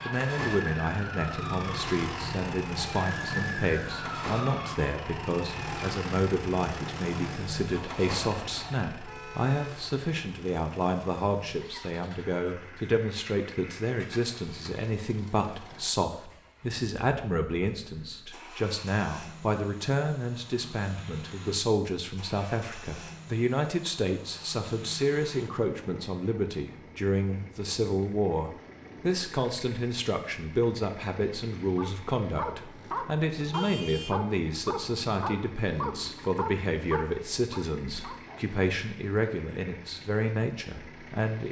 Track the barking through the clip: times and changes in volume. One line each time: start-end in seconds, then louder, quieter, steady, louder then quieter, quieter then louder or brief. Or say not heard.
31.8-38.5 quieter.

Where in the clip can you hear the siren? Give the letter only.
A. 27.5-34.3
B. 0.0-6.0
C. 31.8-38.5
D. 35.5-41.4
B.